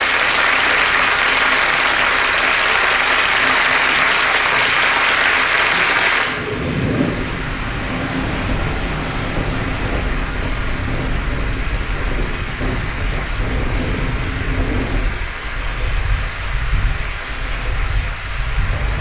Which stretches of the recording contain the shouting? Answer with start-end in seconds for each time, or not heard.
not heard.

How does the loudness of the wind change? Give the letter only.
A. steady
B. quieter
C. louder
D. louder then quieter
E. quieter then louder
D.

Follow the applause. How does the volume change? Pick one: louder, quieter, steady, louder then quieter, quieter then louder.
quieter.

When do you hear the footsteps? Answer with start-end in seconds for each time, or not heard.
not heard.